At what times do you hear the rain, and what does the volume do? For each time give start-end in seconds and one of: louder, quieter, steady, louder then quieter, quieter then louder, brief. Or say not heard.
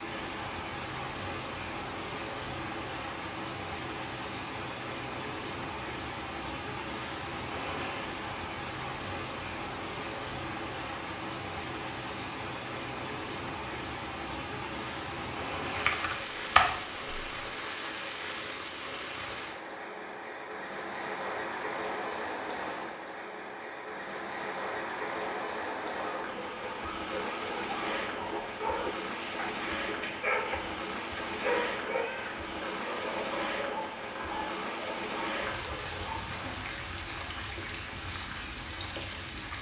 0.0-39.5 steady.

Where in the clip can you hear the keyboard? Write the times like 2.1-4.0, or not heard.
15.8-17.3.